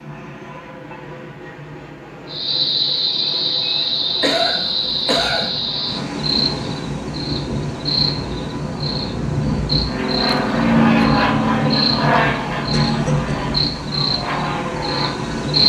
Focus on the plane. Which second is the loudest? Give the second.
11 s.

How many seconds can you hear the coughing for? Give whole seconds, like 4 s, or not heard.
2 s.